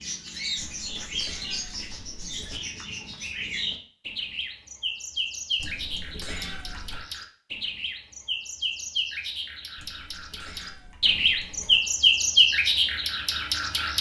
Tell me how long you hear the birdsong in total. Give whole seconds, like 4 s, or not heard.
14 s.